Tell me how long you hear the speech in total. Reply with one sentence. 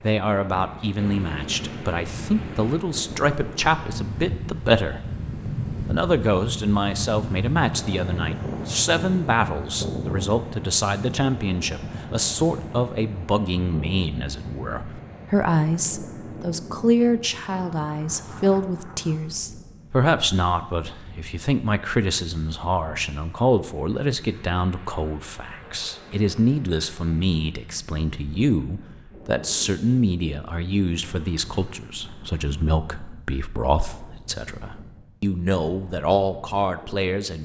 The speech can be heard for 37 seconds in total.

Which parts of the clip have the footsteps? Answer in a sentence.
The footsteps can't be heard in this clip.